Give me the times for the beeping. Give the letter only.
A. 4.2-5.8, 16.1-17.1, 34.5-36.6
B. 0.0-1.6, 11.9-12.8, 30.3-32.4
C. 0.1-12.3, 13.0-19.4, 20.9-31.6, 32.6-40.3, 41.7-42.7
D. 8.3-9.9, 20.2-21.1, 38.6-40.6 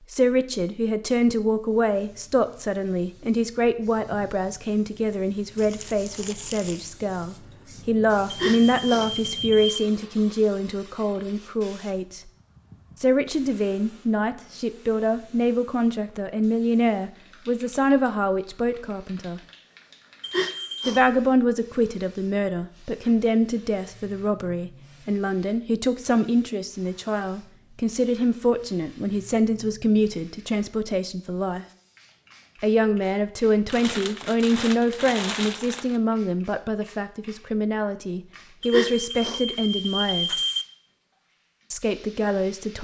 D.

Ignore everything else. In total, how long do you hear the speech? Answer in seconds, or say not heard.
38 s.